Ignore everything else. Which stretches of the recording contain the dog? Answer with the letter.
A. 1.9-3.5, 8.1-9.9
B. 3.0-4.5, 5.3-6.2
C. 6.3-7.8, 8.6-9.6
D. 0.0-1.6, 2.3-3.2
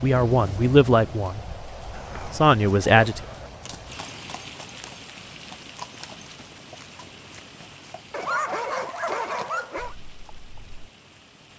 A.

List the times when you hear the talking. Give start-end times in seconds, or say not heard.
0.0-1.6, 2.3-3.2.